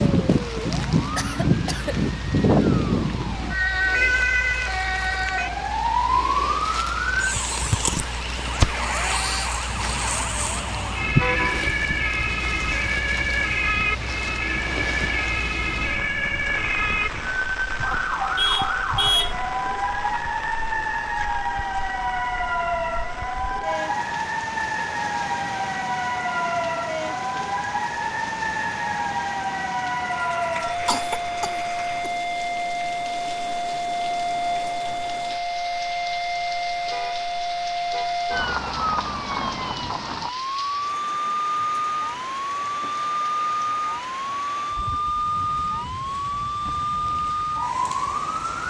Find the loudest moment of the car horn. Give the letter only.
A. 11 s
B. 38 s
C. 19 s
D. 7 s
C.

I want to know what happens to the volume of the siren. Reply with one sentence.
The volume of the siren stays about the same.